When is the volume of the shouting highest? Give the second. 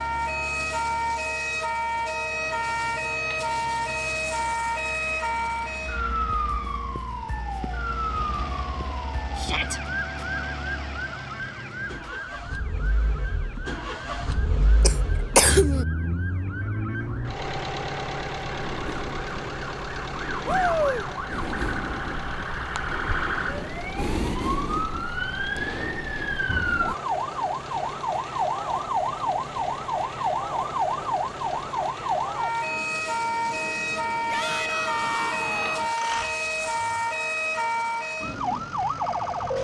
21 s.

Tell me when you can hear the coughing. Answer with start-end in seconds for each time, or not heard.
14.8-15.8.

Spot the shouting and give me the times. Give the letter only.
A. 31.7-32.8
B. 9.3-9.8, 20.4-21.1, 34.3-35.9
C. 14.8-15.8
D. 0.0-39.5
B.